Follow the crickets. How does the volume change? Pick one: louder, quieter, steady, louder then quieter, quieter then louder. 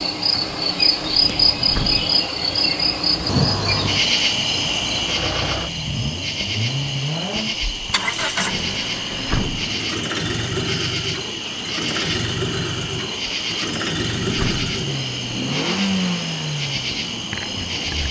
quieter.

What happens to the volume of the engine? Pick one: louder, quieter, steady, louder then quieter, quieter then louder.
louder.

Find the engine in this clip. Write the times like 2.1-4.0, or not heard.
0.2-18.0.